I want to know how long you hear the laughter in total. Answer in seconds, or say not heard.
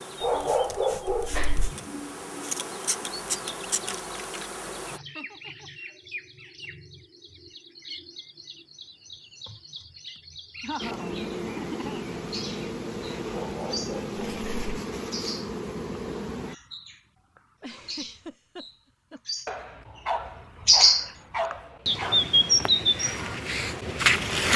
4 s.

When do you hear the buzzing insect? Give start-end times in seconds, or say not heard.
0.0-5.0, 10.8-16.6.